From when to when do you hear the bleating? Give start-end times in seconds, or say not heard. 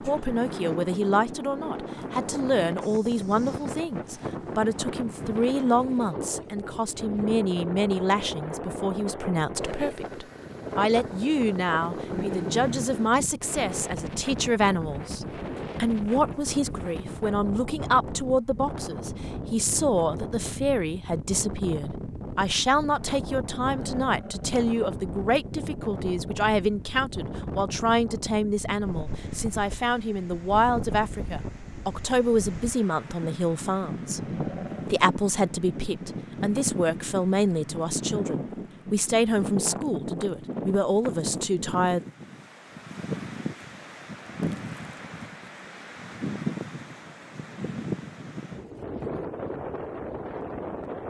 not heard.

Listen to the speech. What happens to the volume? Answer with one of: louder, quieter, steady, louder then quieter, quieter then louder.
steady.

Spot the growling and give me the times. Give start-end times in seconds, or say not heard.
12.1-12.9, 23.6-24.6, 34.2-34.9.